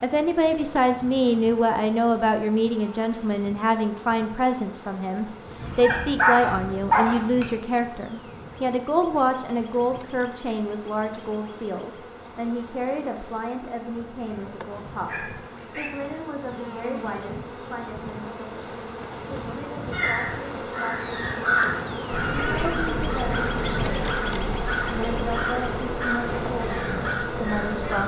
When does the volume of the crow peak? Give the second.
22 s.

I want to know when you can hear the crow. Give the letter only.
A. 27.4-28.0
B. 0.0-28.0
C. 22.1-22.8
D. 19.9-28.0
D.